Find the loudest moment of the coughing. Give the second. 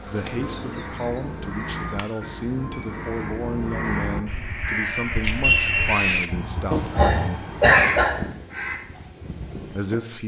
8 s.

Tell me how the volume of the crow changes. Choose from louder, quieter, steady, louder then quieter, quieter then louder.
louder then quieter.